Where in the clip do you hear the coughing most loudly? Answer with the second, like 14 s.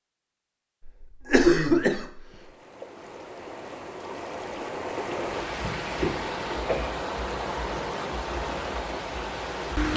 2 s.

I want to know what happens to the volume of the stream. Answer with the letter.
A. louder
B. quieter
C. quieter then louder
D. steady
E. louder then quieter
A.